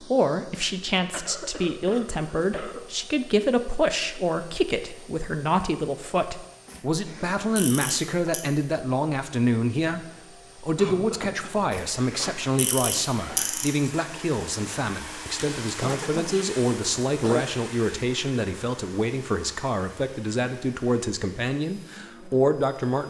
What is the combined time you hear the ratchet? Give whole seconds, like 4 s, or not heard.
4 s.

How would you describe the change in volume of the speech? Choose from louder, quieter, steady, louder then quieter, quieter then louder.
steady.